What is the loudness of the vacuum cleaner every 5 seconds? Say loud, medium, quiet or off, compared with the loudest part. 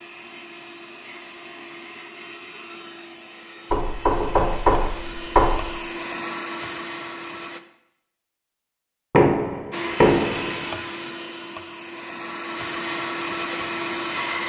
medium, loud, loud.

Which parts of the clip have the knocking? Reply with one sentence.
The knocking can be heard from 3.7 to 5.7 s and from 9.1 to 10.6 s.